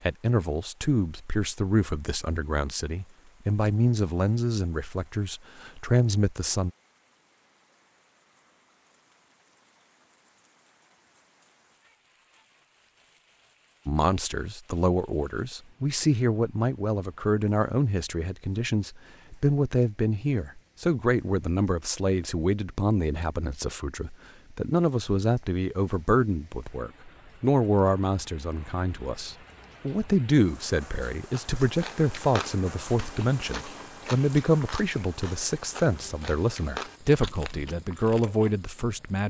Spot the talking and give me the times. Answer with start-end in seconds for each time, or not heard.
0.1-6.7, 13.8-39.2.